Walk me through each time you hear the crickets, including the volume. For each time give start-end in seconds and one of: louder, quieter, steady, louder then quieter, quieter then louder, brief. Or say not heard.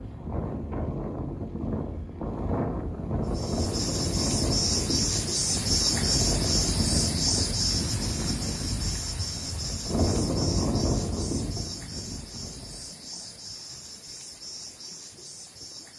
3.2-15.9 quieter.